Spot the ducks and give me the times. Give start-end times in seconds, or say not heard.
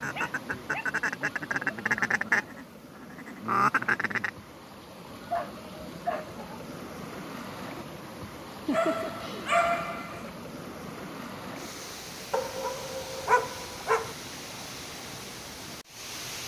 0.0-4.3.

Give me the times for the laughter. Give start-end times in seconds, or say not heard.
8.5-9.6.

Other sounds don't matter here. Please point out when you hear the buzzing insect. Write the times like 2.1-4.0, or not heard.
not heard.